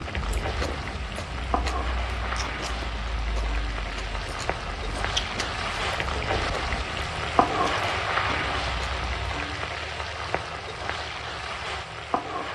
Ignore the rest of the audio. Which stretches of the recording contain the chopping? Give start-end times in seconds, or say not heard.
not heard.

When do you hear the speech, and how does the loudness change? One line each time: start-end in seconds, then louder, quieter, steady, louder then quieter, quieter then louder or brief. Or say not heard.
not heard.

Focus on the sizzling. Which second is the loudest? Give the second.
8 s.